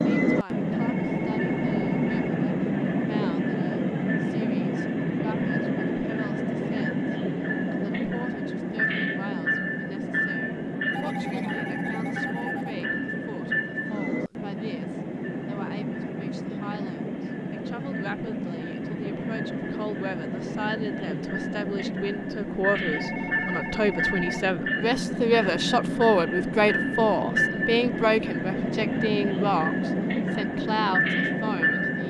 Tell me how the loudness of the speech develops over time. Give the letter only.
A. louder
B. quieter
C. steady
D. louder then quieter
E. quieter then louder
A.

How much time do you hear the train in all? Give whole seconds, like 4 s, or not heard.
32 s.